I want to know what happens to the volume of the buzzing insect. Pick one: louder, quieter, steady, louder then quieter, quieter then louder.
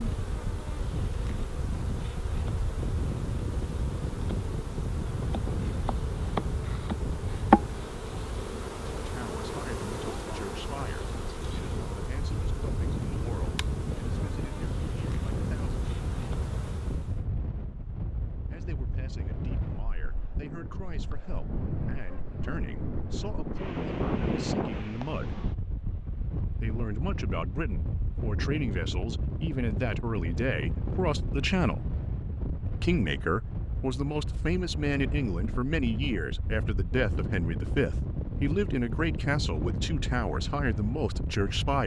louder then quieter.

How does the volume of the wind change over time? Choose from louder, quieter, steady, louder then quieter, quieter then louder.
steady.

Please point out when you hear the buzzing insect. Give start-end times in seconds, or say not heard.
0.0-17.2.